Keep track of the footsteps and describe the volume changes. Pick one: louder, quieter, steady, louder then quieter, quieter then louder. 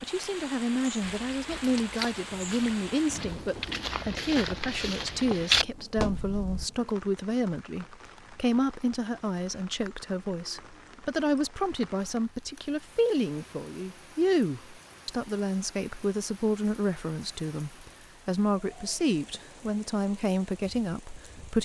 quieter then louder.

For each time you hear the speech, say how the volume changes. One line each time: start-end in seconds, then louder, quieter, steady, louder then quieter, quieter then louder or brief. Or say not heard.
0.0-21.6 steady.